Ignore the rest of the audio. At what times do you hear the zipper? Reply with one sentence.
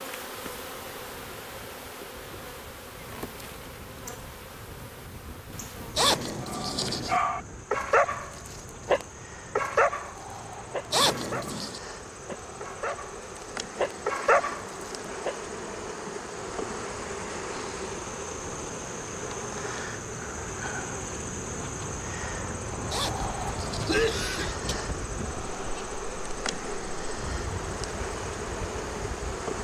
The zipper can be heard from 6.0 to 7.2 s, from 10.9 to 11.8 s and from 22.9 to 24.0 s.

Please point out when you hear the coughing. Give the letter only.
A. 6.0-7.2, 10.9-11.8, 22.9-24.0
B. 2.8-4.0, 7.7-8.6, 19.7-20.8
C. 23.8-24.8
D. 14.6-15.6
C.